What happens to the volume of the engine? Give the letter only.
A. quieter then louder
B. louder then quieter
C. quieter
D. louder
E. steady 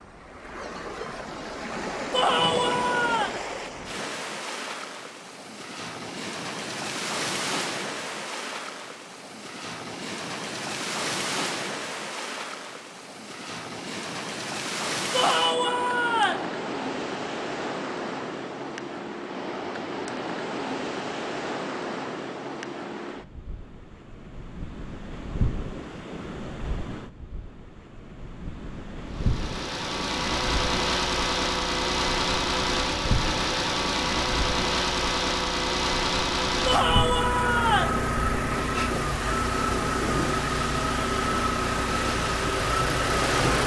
E.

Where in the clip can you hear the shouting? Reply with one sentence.
You can hear the shouting from 2.1 to 3.4 s, from 15.1 to 16.4 s and from 36.6 to 38.0 s.